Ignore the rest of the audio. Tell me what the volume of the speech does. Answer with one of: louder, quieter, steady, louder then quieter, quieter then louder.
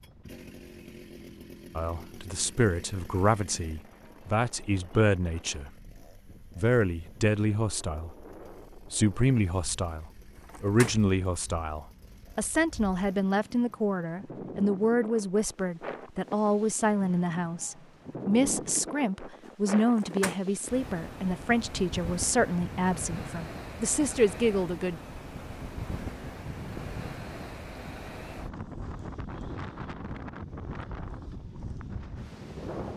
steady.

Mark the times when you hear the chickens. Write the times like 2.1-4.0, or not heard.
not heard.